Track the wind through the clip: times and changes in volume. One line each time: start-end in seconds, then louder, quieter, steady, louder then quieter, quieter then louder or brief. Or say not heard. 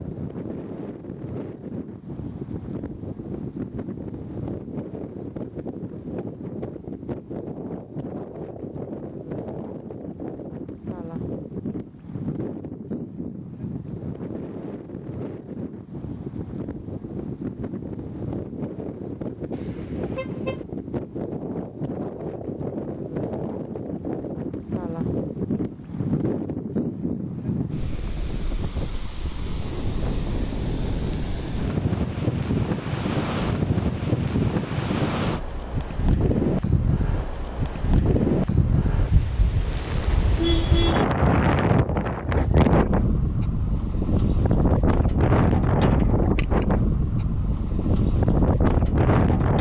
0.0-49.5 louder.